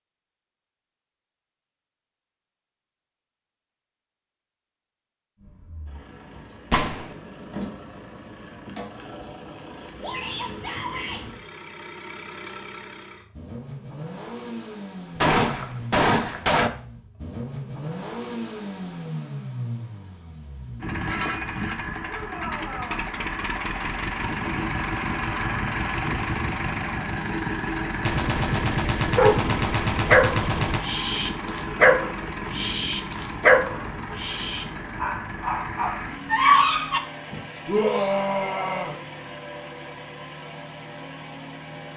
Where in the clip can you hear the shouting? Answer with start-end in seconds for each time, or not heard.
10.0-11.2, 22.1-23.1, 37.6-39.0.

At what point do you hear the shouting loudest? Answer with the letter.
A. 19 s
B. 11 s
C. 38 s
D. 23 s
C.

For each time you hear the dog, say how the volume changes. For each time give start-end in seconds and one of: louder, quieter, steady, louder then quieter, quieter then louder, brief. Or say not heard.
29.1-37.0 quieter then louder.